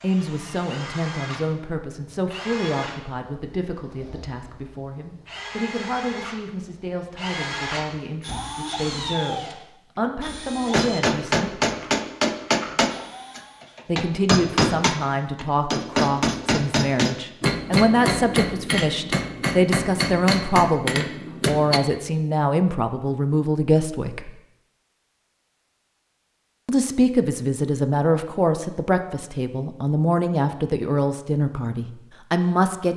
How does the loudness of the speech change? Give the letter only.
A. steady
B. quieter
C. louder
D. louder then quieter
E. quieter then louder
C.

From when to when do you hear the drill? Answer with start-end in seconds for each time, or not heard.
0.0-13.8.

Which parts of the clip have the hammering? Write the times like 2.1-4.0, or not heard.
10.7-21.8.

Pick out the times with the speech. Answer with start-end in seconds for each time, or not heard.
0.0-11.6, 13.8-24.3, 26.6-32.9.